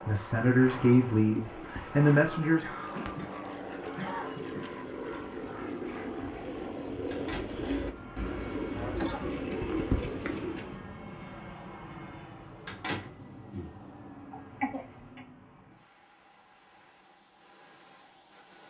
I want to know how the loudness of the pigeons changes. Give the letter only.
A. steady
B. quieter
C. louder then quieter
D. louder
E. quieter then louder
D.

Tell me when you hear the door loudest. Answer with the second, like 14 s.
13 s.